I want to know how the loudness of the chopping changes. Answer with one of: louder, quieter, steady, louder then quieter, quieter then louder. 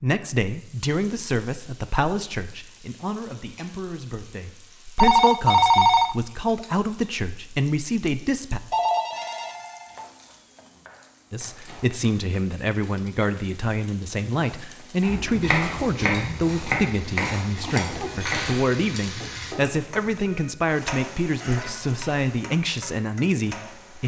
quieter.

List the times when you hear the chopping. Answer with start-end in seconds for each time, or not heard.
15.0-20.4.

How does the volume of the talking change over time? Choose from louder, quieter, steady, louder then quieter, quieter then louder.
steady.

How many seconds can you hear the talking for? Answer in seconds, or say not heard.
21 s.